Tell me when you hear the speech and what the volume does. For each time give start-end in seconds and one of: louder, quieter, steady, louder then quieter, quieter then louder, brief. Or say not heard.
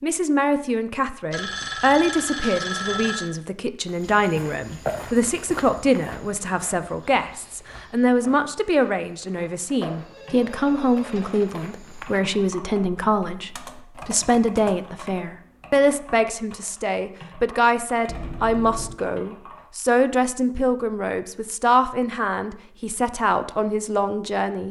0.0-24.6 steady.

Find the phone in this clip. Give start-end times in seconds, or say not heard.
1.3-3.3, 10.0-11.6, 18.1-19.0.